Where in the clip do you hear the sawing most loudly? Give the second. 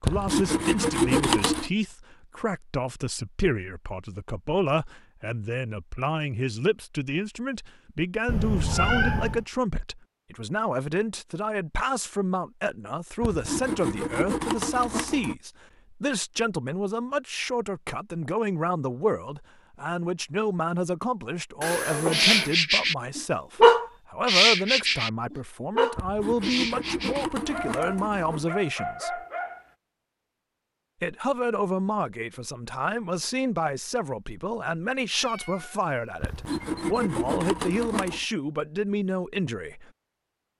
1 s.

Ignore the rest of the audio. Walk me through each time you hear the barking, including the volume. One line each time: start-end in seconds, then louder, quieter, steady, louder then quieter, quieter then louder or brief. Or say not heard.
22.1-29.6 quieter.